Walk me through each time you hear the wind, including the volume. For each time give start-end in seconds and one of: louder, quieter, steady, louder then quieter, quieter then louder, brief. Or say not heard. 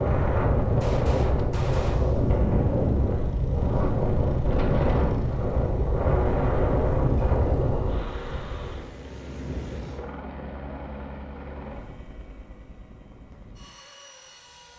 0.0-8.8 steady.